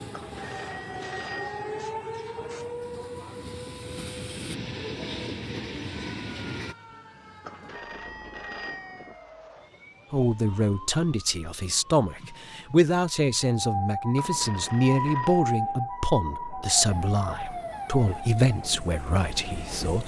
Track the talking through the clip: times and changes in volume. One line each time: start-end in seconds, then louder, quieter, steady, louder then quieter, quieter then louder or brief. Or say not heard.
10.1-20.0 steady.